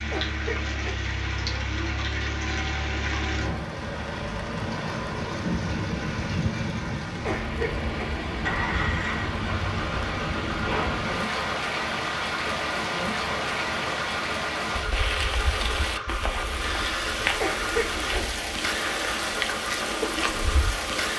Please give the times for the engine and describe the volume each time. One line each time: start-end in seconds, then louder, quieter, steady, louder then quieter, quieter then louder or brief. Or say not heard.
0.0-21.1 steady.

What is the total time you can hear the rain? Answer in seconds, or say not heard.
21 s.